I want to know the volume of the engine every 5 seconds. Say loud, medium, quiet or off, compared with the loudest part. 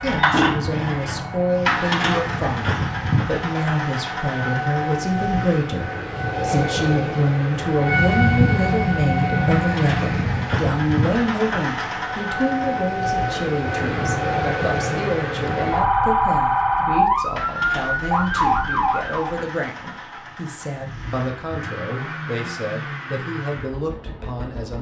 loud, medium, medium, medium, medium.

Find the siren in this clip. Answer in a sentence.
You can hear the siren from 0.0 to 19.4 s.